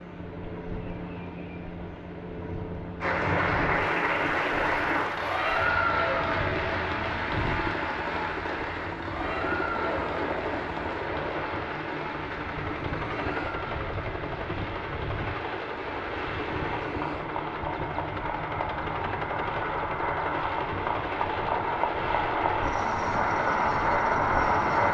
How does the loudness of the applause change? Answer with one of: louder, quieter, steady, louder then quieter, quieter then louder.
quieter then louder.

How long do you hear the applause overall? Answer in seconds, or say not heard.
22 s.